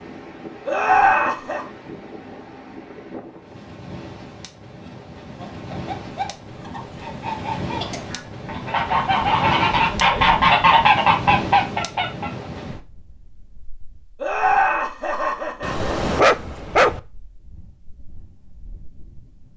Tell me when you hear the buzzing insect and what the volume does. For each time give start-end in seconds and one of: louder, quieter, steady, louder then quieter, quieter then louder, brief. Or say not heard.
not heard.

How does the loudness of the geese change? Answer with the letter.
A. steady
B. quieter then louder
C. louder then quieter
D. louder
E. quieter
D.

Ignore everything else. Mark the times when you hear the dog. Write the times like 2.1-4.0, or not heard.
15.6-17.0.